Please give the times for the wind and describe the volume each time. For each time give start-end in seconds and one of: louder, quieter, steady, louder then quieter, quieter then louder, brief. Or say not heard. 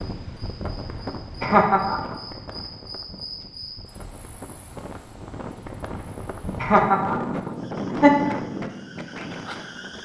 0.0-9.9 quieter then louder.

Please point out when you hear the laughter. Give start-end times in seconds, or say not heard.
1.4-2.1, 6.6-8.3.